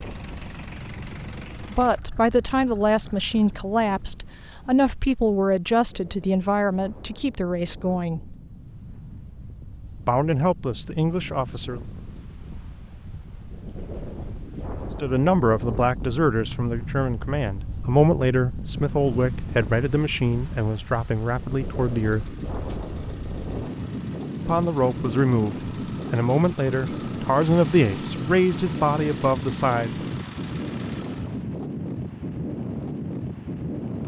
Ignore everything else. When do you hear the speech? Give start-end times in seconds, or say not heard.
1.7-8.3, 10.1-11.8, 15.0-22.4, 24.4-30.1.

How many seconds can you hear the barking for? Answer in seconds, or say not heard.
not heard.